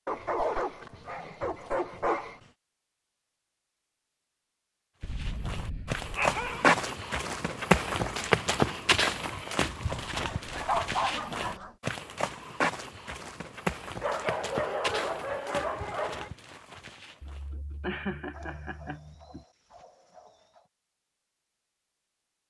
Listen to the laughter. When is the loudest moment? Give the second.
18 s.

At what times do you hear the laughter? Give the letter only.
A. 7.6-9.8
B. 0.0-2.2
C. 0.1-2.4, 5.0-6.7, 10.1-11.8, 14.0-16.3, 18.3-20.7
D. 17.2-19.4
D.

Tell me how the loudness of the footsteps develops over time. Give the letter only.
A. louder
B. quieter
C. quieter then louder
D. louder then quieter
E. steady
B.